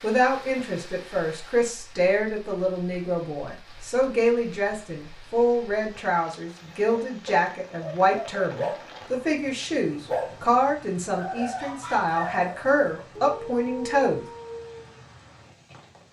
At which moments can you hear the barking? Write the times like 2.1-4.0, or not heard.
6.9-14.9.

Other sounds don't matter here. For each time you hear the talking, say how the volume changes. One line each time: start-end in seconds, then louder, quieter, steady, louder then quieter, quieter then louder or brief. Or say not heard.
0.0-14.2 steady.